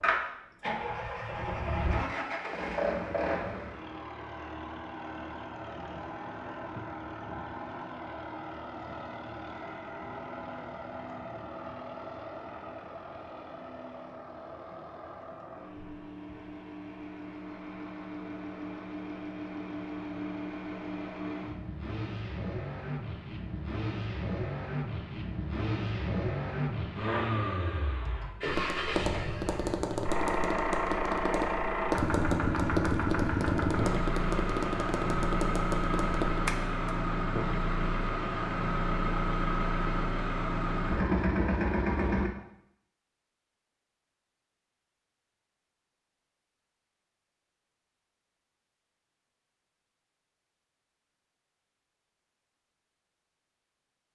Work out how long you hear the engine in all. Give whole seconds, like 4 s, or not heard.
42 s.